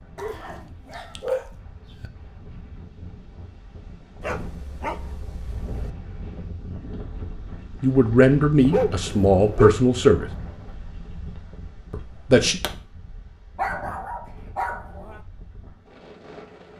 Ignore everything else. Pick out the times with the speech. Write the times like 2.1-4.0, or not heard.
7.8-10.3, 11.9-12.6.